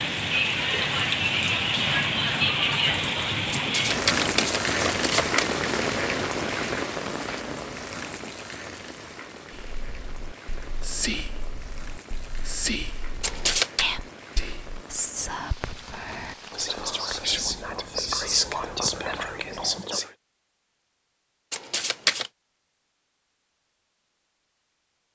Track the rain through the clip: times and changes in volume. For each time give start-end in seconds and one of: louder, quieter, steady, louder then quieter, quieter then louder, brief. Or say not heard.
0.0-19.9 quieter.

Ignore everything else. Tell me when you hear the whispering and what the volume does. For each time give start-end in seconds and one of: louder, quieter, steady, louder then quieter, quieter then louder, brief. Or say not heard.
9.5-20.1 louder.